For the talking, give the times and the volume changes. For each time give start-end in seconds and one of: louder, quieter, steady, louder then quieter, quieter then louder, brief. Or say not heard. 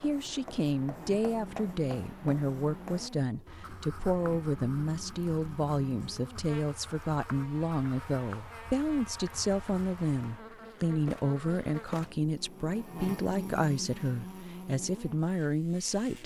0.0-16.2 steady.